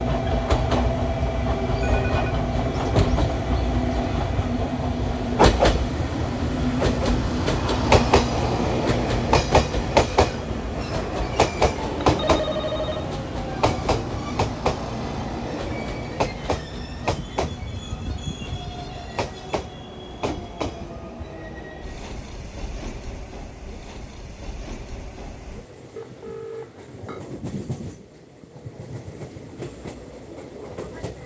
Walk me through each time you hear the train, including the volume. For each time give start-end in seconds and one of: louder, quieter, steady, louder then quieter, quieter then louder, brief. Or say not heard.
0.0-31.2 quieter.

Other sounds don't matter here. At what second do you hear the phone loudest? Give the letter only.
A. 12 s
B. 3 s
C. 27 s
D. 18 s
A.